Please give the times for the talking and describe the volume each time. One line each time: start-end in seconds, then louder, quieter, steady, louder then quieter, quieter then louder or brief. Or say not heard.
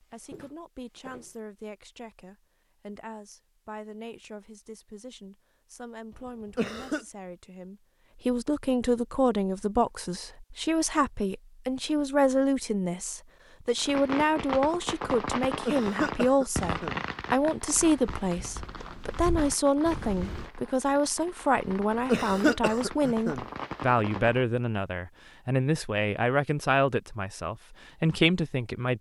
0.0-28.9 louder.